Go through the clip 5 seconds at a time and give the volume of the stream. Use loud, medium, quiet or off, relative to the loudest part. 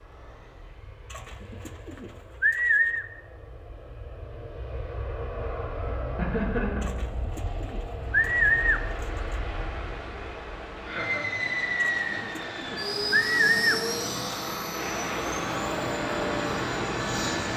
off, medium, medium, loud.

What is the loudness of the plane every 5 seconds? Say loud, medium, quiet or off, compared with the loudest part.
quiet, medium, loud, loud.